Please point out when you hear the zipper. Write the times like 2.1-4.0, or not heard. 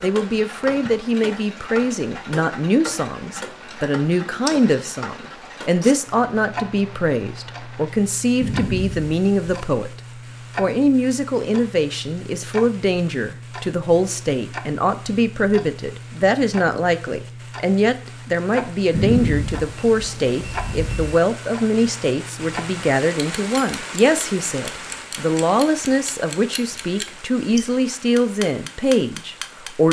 not heard.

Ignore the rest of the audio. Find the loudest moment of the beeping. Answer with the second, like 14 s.
19 s.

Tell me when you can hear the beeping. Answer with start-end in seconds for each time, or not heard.
8.4-9.6, 18.9-21.1.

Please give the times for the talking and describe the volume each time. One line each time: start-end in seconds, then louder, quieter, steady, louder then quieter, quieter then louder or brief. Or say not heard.
0.0-9.9 steady
10.6-29.8 steady.